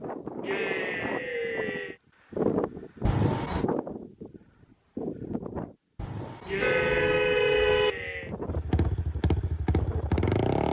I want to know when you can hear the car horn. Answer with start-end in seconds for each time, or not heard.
3.0-3.6, 6.0-8.0.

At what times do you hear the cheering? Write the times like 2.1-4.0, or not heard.
0.4-1.9, 6.5-8.3.